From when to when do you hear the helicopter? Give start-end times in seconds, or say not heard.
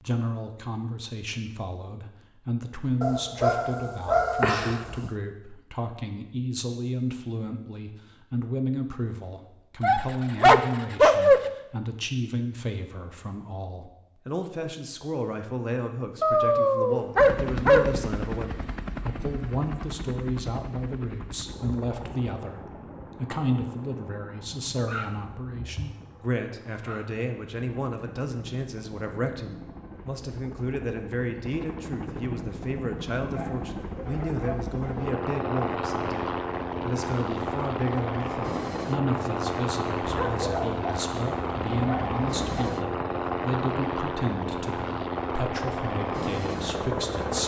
17.1-47.4.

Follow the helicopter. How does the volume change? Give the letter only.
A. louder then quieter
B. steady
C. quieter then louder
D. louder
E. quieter
C.